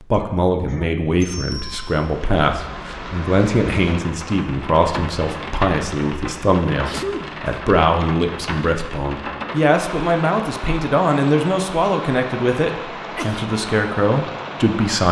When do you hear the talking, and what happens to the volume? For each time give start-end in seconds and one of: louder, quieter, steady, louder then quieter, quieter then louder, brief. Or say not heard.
0.0-15.0 steady.